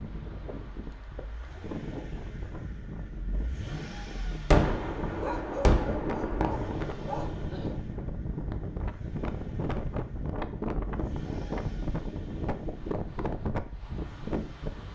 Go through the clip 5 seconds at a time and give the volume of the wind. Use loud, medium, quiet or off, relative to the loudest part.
medium, loud, loud.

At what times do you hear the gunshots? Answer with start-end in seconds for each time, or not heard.
4.5-7.8.